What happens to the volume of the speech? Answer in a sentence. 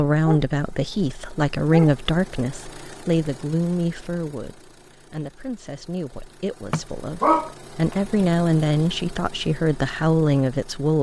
The loudness of the speech goes down, then up.